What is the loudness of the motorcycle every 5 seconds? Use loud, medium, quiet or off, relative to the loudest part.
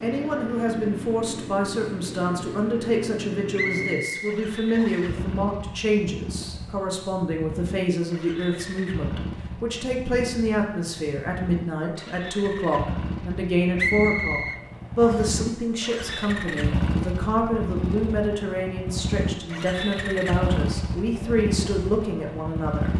medium, medium, medium, loud, loud.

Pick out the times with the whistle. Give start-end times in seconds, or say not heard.
3.5-5.2, 13.8-15.3.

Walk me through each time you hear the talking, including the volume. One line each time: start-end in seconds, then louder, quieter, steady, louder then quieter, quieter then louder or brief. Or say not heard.
0.0-22.9 steady.